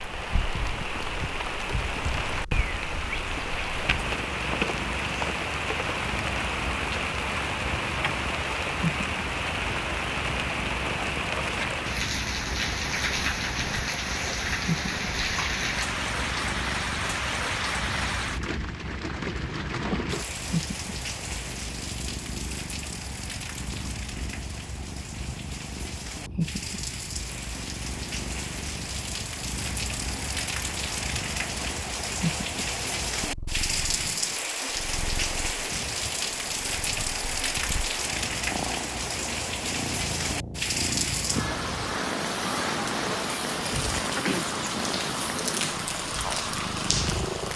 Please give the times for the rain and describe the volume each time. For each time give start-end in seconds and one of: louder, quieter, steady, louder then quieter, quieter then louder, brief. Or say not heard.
0.0-47.5 quieter then louder.